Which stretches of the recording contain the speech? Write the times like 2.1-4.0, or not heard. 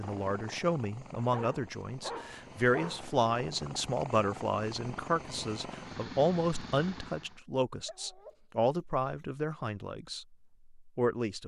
0.0-11.4.